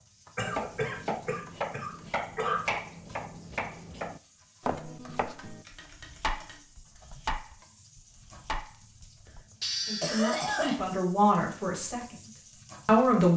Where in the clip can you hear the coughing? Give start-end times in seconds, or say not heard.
0.3-2.7, 9.6-10.8.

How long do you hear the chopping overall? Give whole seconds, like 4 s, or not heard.
9 s.